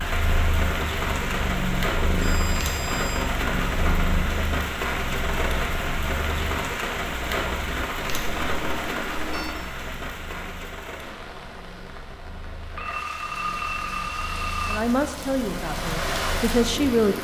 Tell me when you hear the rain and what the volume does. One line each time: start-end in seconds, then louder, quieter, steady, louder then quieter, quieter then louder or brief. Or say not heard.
0.0-17.2 quieter then louder.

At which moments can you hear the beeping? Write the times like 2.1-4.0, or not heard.
2.1-3.2, 8.1-9.6, 12.8-14.8.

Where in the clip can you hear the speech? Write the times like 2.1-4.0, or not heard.
14.7-17.2.